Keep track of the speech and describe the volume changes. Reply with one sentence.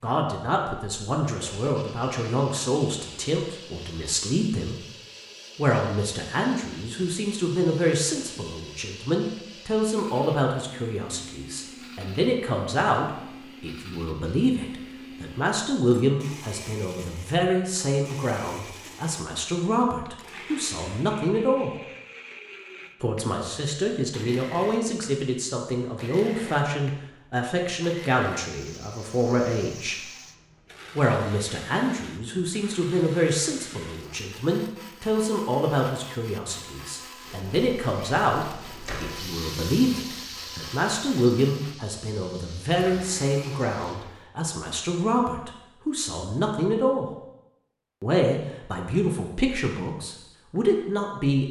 The loudness of the speech stays about the same.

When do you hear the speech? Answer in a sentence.
You can hear the speech from 0.0 to 4.8 s, from 5.5 to 21.7 s, from 23.0 to 30.0 s, from 30.9 to 47.0 s and from 48.0 to 51.4 s.